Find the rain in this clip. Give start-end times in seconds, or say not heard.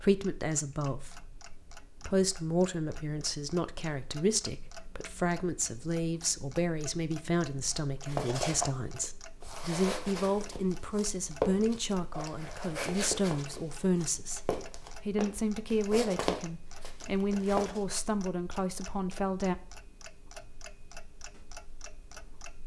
not heard.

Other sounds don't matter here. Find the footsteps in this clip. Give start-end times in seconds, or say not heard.
8.1-17.9.